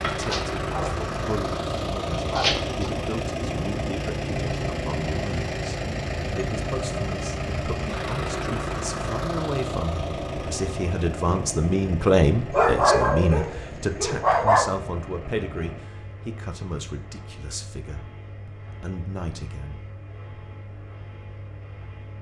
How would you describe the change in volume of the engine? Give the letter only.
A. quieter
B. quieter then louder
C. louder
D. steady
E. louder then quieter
A.